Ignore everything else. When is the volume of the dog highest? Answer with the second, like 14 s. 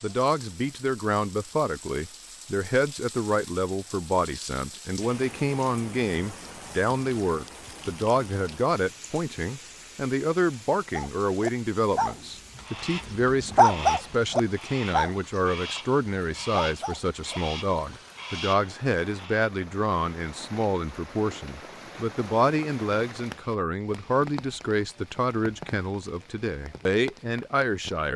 14 s.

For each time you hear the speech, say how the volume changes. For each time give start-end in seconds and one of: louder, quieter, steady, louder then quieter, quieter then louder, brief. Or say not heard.
0.0-28.1 steady.